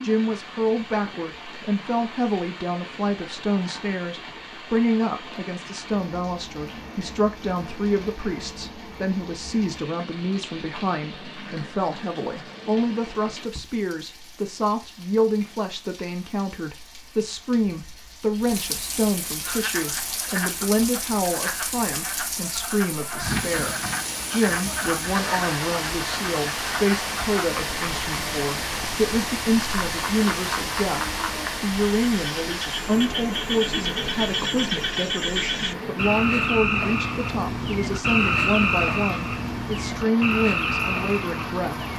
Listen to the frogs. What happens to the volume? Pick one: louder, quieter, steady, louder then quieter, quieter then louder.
louder.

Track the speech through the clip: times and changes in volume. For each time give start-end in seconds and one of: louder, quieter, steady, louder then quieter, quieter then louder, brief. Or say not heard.
0.0-41.8 steady.